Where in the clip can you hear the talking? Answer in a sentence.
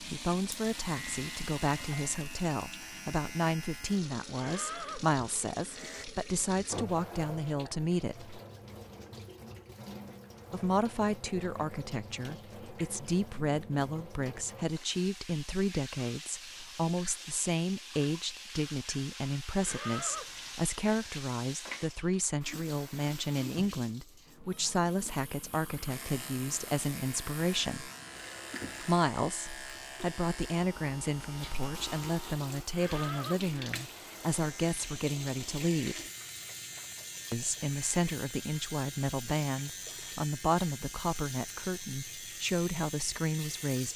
The talking can be heard from 0.0 to 8.3 s, from 10.5 to 27.9 s, from 28.8 to 36.0 s and from 37.3 to 43.9 s.